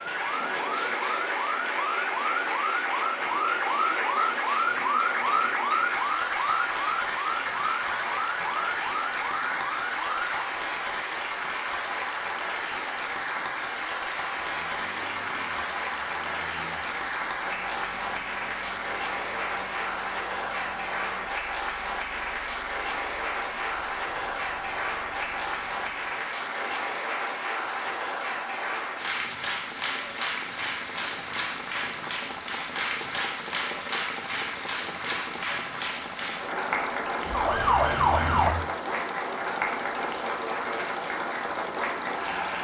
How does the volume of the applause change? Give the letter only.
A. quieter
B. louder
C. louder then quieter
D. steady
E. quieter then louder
D.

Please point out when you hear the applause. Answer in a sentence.
The applause can be heard from 0.0 to 42.5 s.